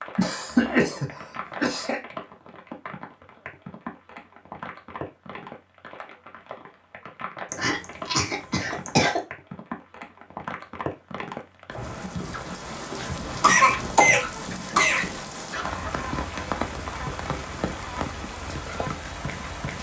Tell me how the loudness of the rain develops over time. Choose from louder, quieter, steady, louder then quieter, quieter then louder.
louder.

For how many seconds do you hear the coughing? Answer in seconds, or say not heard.
5 s.